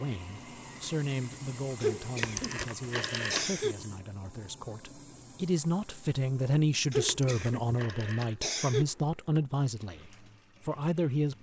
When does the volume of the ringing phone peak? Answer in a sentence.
The volume of the ringing phone peaks at 3 seconds.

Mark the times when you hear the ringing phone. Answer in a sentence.
You can hear the ringing phone from 2.2 to 3.5 s and from 7.0 to 8.4 s.